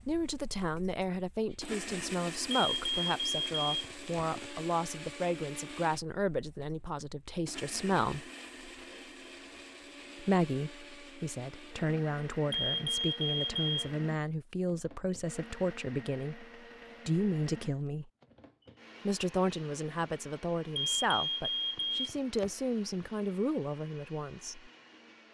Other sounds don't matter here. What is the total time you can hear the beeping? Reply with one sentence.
The beeping can be heard for 5 seconds in total.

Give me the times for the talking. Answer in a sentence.
You can hear the talking from 0.1 to 8.2 s, from 10.2 to 16.4 s, from 17.1 to 18.1 s and from 19.1 to 24.7 s.